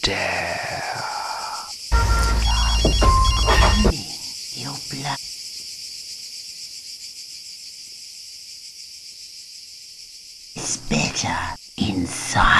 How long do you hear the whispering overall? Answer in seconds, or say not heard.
7 s.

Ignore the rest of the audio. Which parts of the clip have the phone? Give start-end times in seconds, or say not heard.
1.9-4.0.